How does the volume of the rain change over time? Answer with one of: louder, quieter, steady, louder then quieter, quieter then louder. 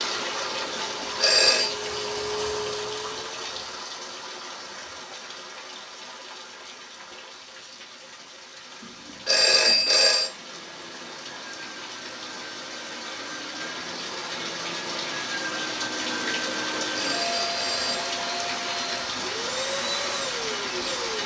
quieter then louder.